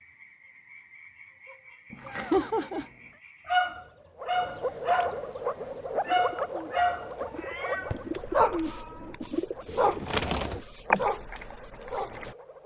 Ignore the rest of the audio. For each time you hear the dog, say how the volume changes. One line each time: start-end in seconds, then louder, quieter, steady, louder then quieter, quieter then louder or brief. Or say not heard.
3.5-5.2 brief
6.0-12.3 quieter then louder.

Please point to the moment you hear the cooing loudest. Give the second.
10 s.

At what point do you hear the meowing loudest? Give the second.
2 s.